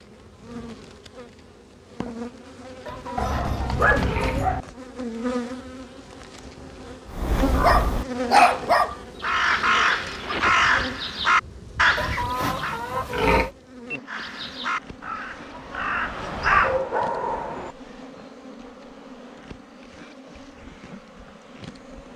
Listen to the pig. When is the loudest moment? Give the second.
13 s.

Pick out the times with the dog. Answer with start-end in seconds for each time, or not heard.
3.1-4.7, 7.6-8.9, 16.6-17.8.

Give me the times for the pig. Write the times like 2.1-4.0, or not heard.
2.9-4.5, 11.9-13.5.